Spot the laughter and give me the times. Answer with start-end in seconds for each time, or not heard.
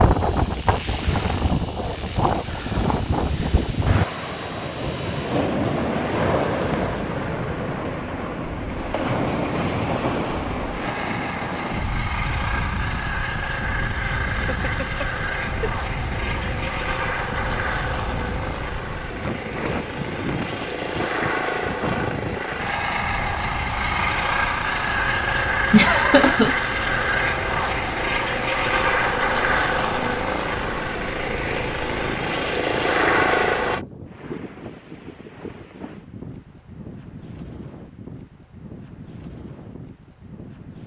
14.3-15.7, 25.4-26.6.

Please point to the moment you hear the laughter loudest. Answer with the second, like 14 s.
26 s.